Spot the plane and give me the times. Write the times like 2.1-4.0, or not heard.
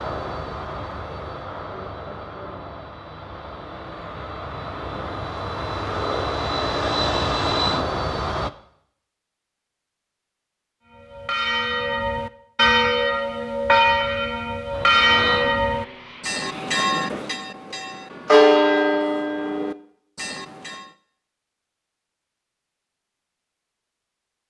0.0-8.5, 14.7-16.9.